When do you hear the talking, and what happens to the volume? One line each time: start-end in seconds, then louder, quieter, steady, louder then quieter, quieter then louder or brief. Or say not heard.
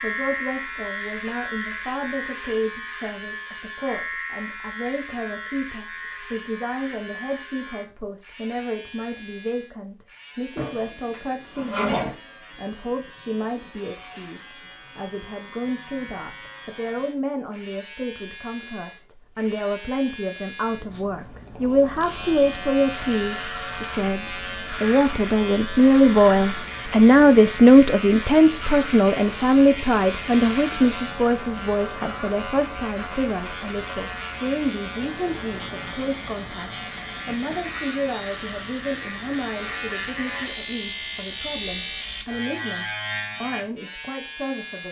0.0-44.8 louder then quieter.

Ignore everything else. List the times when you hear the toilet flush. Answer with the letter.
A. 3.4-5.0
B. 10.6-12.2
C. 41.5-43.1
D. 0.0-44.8
B.